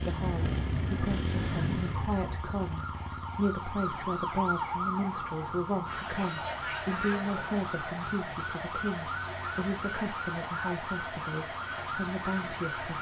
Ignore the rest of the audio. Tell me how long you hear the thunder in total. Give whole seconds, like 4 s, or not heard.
2 s.